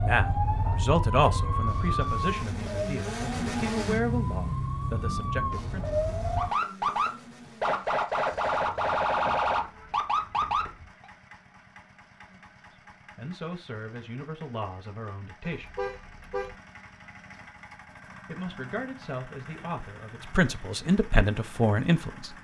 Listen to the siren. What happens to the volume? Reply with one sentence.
The loudness of the siren goes down, then up.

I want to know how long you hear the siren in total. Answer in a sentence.
You can hear the siren for 11 seconds altogether.